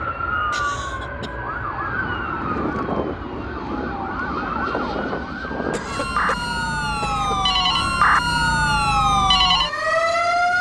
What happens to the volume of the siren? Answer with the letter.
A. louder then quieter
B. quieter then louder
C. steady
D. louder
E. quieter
D.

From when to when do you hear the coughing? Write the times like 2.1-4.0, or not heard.
0.5-1.3, 5.7-7.3.